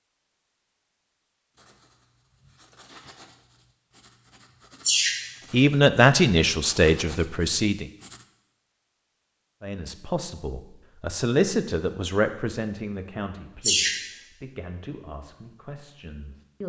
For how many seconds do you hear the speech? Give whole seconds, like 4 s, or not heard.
9 s.